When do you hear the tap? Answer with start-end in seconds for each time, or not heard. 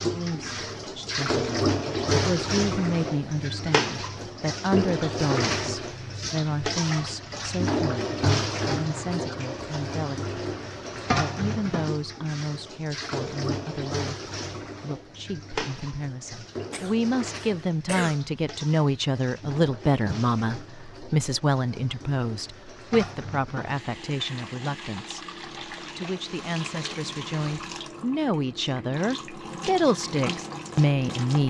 0.0-31.4.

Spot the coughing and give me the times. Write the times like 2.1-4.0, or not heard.
16.7-18.2.